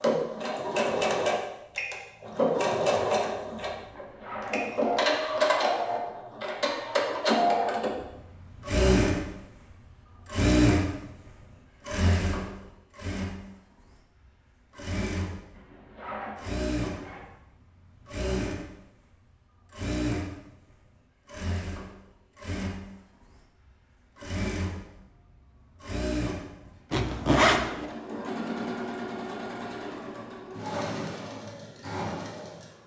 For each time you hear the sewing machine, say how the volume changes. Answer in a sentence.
You can hear the sewing machine from 0.0 to 32.8 s, getting quieter.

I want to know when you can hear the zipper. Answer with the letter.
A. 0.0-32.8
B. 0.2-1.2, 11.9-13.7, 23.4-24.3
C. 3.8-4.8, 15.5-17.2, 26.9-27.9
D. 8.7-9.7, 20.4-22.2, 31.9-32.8
C.